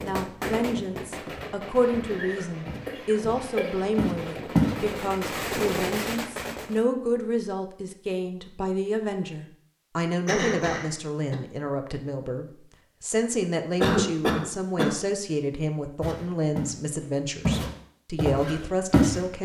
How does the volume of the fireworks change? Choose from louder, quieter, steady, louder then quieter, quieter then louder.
quieter then louder.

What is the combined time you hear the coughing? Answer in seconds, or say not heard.
4 s.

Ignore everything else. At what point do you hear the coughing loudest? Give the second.
14 s.